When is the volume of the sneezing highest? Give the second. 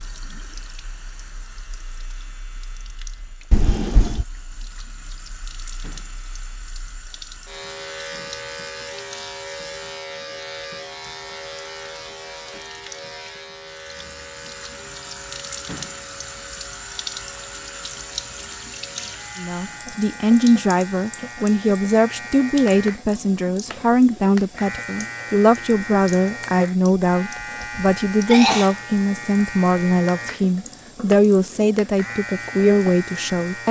28 s.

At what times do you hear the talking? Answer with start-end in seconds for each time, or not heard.
19.4-33.6.